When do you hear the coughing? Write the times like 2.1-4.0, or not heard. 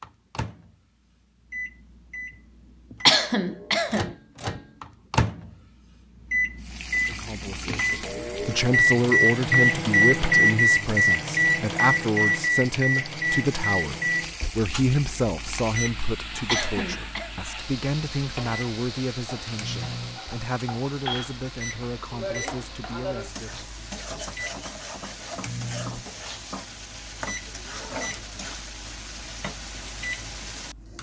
3.0-4.1, 16.4-17.3.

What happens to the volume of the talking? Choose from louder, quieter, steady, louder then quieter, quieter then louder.
quieter.